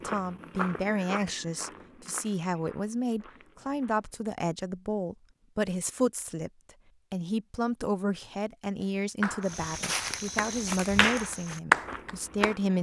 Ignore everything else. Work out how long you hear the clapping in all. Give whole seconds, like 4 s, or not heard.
4 s.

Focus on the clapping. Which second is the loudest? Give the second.
12 s.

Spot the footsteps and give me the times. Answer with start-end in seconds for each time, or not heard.
0.0-4.2, 9.4-12.7.